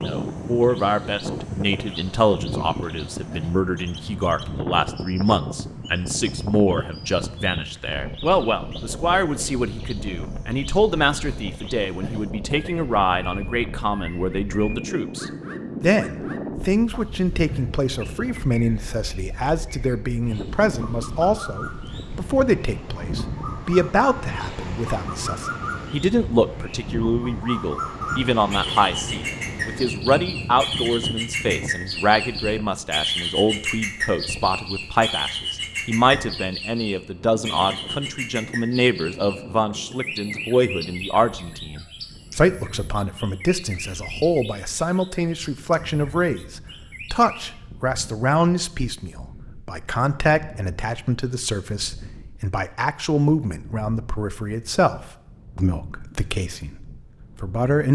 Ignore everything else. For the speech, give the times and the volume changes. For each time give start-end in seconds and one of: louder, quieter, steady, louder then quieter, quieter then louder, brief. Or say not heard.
0.0-57.9 steady.